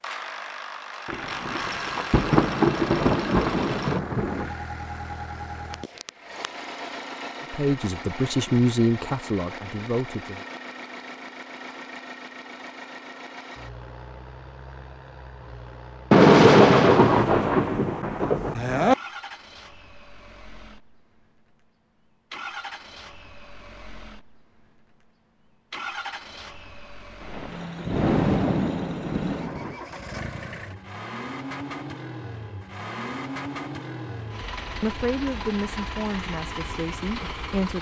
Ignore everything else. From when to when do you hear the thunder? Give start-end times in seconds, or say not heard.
1.1-4.5, 16.1-18.9, 27.2-29.8.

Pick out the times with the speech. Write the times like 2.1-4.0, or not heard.
7.5-10.4, 34.8-37.7.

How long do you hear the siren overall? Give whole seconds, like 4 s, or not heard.
not heard.